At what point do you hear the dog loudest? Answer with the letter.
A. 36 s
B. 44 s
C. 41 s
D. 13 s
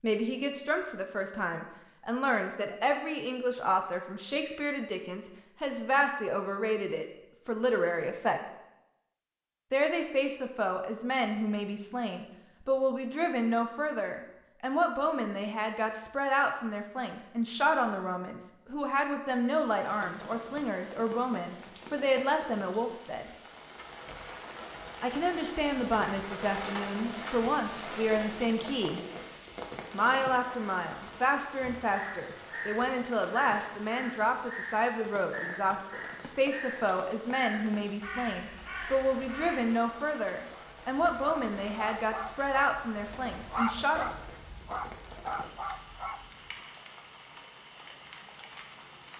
B.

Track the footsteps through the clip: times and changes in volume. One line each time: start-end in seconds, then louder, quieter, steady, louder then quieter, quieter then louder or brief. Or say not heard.
not heard.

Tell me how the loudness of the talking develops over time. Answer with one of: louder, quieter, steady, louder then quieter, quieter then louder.
steady.